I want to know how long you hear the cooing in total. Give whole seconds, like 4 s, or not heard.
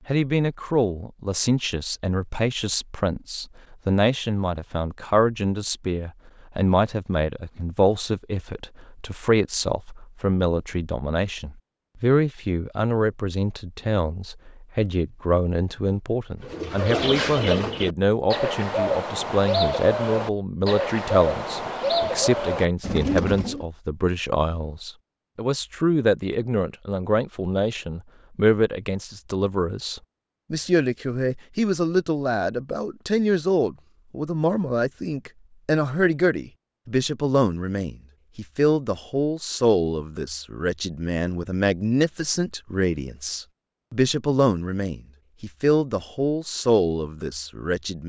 7 s.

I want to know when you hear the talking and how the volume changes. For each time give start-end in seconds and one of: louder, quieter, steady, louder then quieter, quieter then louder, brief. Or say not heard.
0.1-48.0 steady.